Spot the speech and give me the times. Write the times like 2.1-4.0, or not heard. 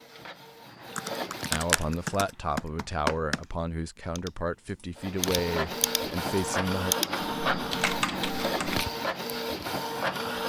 1.5-7.0.